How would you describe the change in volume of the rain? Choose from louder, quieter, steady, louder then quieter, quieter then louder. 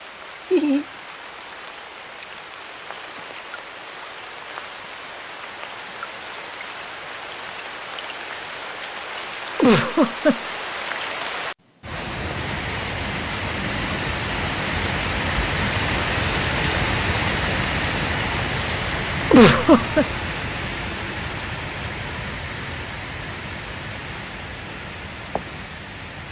louder then quieter.